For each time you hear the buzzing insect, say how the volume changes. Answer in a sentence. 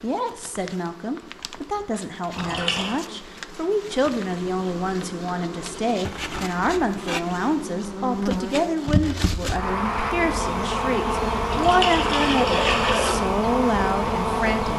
The buzzing insect can be heard from 0.0 to 14.7 s, getting louder.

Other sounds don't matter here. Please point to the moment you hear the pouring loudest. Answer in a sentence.
The volume of the pouring peaks at 13 seconds.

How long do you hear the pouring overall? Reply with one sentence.
You can hear the pouring for 2 seconds altogether.